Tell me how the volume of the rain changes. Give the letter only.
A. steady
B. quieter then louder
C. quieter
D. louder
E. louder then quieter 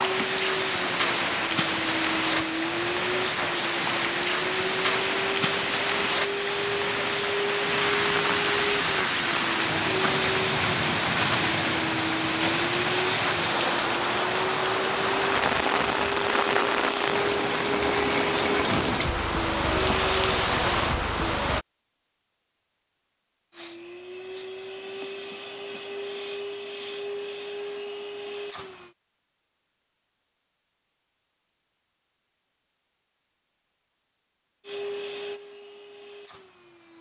A.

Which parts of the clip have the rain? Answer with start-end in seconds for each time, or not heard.
0.0-21.6.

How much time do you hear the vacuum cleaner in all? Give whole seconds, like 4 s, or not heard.
29 s.